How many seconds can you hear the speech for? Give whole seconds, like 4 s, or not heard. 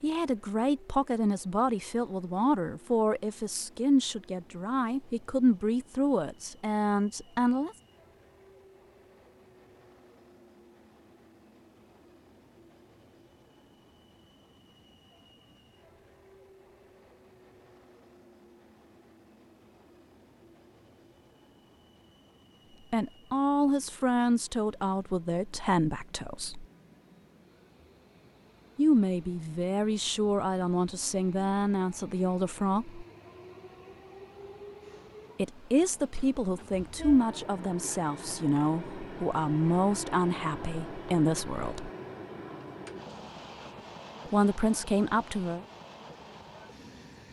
24 s.